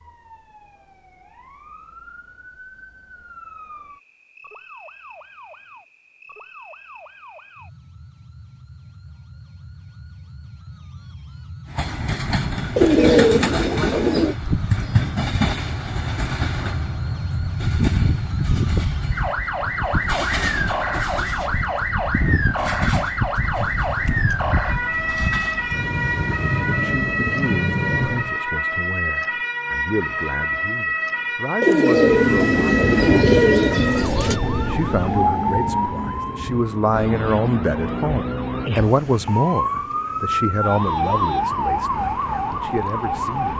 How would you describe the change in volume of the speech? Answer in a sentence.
The loudness of the speech goes up, then down.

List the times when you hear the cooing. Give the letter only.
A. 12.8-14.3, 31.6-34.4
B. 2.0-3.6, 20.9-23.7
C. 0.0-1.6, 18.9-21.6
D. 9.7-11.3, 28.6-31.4
A.